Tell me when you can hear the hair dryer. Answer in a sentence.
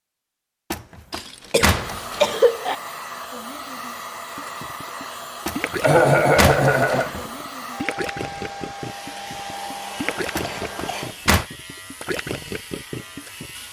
You can hear the hair dryer from 1.8 to 11.2 s.